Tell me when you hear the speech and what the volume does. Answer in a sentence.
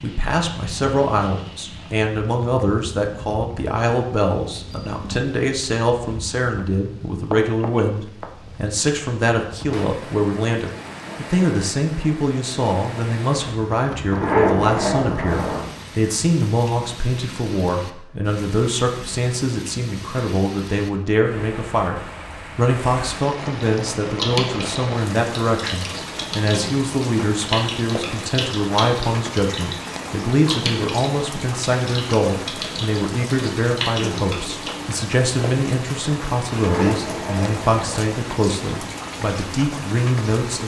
You can hear the speech from 0.0 to 40.6 s, at a steady volume.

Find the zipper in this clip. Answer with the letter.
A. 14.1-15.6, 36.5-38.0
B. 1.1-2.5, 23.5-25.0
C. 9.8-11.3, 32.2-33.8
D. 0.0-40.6
A.